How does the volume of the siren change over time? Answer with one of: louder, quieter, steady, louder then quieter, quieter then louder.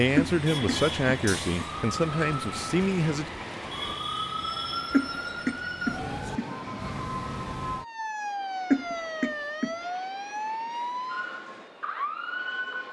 steady.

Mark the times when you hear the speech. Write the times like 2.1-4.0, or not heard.
0.0-3.3.